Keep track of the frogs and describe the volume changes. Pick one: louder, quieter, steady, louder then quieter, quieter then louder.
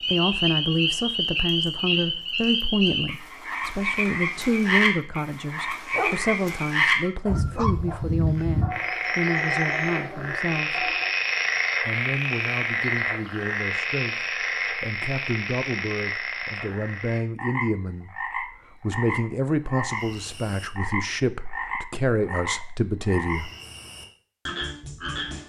quieter.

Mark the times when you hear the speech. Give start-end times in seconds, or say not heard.
0.1-10.9, 11.8-23.5.